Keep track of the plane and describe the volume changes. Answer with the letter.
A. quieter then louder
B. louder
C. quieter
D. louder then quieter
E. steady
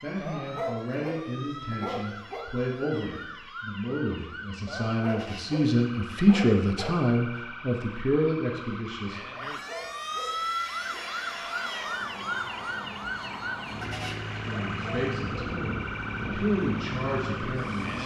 B.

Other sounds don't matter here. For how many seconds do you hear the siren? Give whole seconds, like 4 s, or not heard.
18 s.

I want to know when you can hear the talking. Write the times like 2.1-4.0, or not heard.
0.0-9.2, 14.2-18.0.